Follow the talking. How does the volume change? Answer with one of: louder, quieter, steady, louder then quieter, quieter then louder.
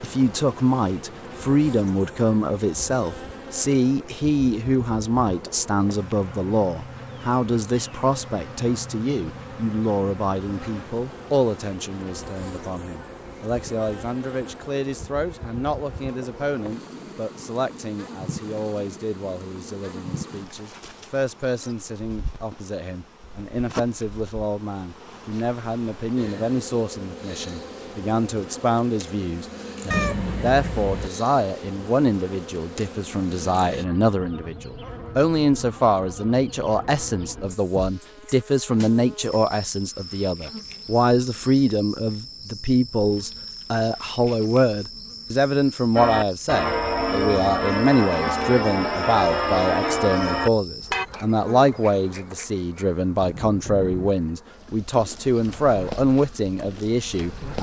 quieter then louder.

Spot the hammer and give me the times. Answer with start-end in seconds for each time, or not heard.
not heard.